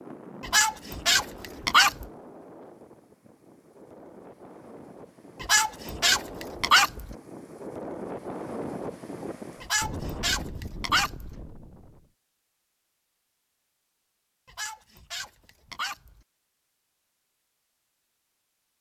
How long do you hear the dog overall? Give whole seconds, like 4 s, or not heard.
7 s.